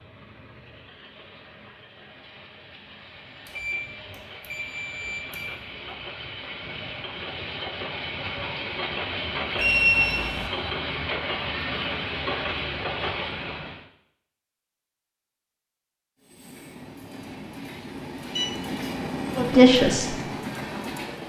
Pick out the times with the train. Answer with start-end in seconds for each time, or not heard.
0.0-13.8, 16.2-21.2.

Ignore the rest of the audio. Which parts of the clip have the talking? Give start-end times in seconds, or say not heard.
19.4-20.1.